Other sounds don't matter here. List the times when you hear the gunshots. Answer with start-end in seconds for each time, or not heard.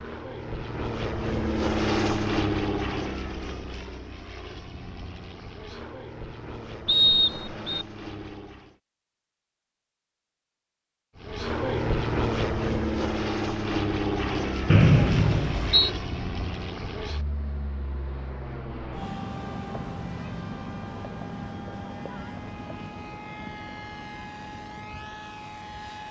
not heard.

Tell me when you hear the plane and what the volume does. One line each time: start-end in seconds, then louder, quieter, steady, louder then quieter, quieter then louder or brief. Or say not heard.
0.0-8.8 quieter
11.2-26.0 quieter.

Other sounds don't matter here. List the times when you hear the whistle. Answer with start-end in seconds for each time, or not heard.
6.8-7.8, 14.7-15.9.